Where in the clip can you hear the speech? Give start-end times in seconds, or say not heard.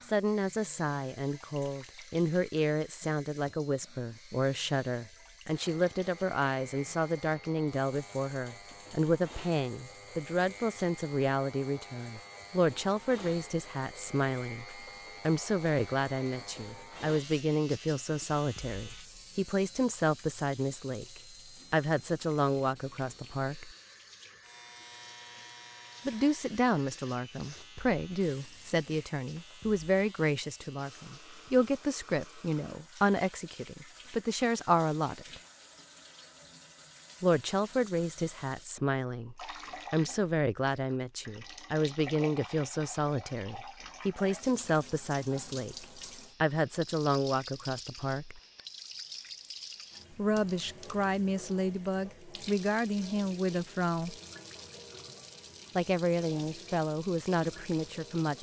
0.0-23.8, 26.1-35.4, 37.2-48.4, 50.1-54.1, 55.8-58.3.